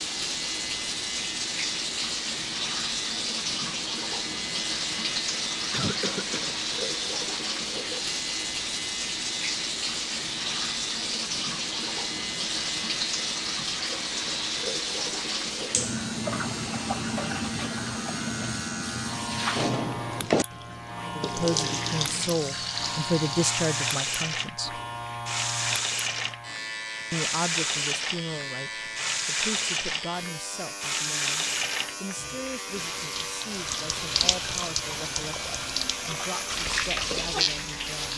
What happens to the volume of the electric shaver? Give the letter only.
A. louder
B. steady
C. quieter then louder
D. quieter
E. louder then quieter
B.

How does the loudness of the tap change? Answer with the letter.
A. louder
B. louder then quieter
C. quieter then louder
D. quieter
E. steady
E.